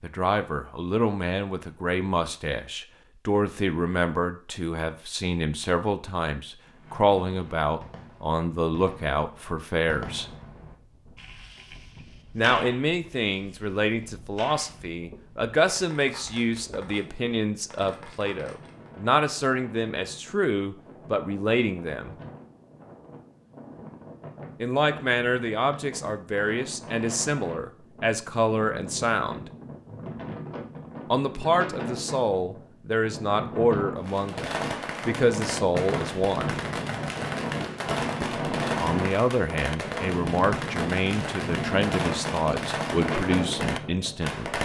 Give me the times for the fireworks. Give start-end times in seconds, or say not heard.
6.7-18.9, 34.0-44.6.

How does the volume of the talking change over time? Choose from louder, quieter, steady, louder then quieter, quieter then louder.
steady.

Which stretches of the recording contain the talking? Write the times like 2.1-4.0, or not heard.
0.0-10.2, 12.3-22.1, 24.6-29.5, 31.1-36.5, 38.2-44.6.